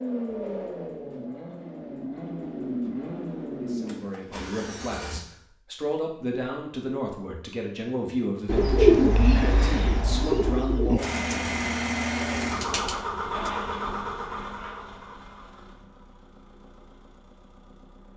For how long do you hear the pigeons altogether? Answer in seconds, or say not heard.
5 s.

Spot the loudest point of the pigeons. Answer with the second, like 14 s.
9 s.